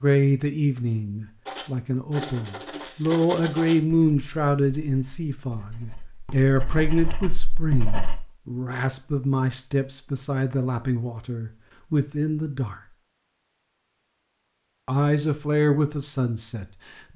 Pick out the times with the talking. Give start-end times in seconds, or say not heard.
0.0-12.8, 14.8-17.1.